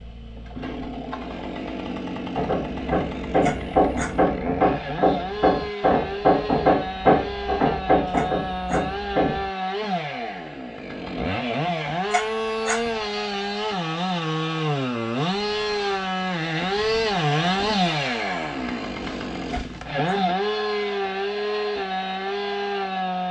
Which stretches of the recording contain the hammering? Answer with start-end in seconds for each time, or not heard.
2.4-9.5.